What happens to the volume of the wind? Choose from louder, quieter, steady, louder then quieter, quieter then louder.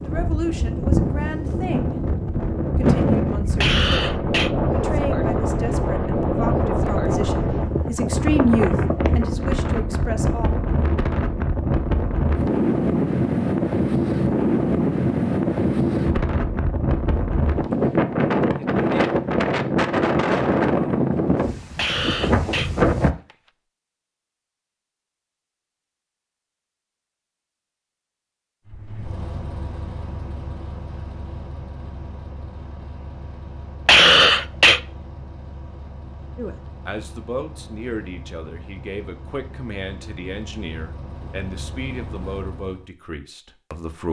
steady.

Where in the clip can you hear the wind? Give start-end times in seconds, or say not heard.
0.0-23.1.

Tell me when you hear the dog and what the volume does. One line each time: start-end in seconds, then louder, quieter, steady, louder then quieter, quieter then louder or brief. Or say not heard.
not heard.